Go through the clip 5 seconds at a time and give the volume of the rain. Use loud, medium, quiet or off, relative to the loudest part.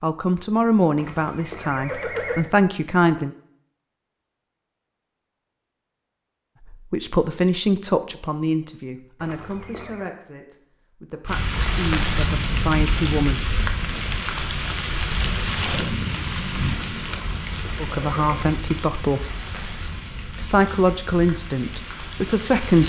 off, off, loud, loud, medium.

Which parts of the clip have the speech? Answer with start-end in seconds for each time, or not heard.
0.0-3.3, 6.7-13.4, 17.8-19.2, 20.4-22.8.